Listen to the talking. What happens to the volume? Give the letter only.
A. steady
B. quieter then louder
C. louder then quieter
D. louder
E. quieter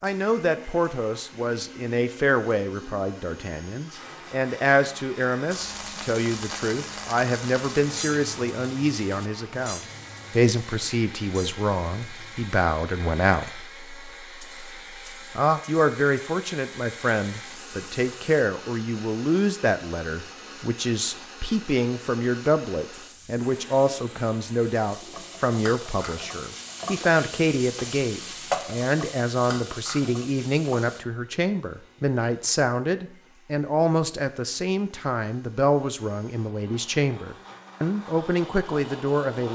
A.